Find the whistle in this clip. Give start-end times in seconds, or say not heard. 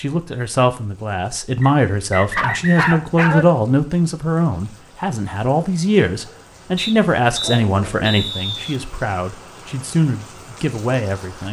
1.6-3.0, 6.8-8.8.